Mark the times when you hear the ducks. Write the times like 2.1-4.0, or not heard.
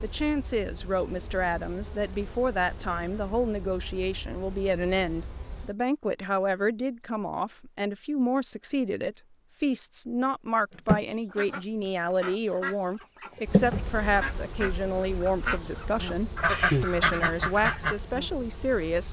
10.7-17.9.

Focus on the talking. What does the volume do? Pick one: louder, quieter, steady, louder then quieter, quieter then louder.
steady.